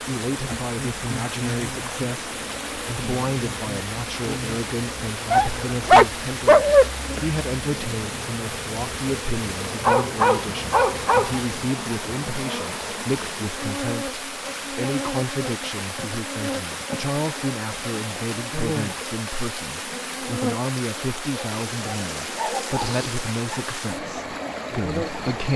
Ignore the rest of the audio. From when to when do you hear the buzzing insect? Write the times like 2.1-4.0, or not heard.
0.0-25.4.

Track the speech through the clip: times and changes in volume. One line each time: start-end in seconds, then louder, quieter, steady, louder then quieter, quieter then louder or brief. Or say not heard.
0.1-25.5 steady.